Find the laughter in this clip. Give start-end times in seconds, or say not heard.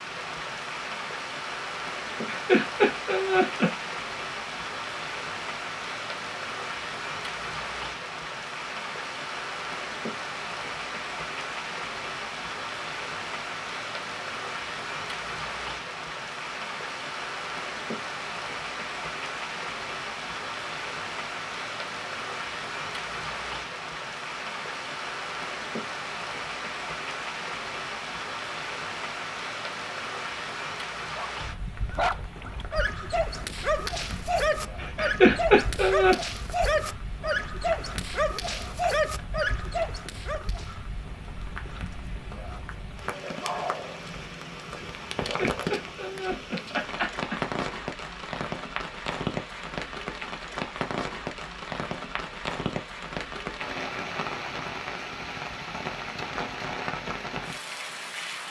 2.0-3.7, 34.8-36.1, 45.2-47.4.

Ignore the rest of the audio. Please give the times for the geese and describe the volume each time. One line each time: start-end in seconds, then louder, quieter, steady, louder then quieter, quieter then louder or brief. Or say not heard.
not heard.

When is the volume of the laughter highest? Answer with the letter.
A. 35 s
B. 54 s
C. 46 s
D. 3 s
A.